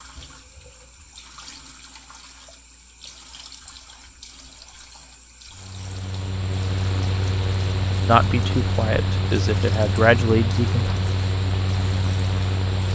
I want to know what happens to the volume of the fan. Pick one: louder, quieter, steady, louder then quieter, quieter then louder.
steady.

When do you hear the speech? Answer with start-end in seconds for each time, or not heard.
8.1-10.9.